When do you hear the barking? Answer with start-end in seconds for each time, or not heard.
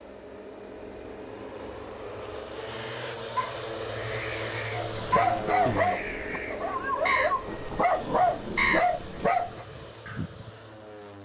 4.7-9.7.